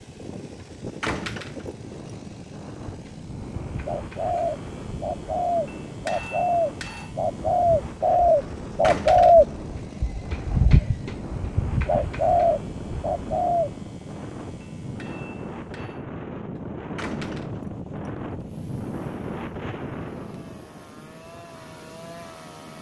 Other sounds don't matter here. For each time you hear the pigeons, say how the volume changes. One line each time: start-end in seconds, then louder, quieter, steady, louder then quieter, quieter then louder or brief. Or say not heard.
2.9-13.8 louder then quieter.